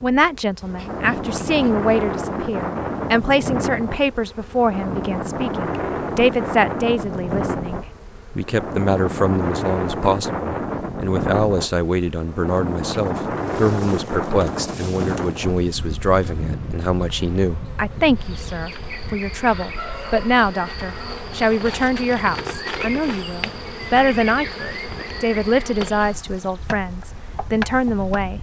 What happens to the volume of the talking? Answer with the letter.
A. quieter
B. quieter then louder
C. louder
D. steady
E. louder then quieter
D.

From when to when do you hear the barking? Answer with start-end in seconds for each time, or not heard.
not heard.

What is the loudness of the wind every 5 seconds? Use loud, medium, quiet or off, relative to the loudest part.
loud, loud, loud, medium, quiet, quiet.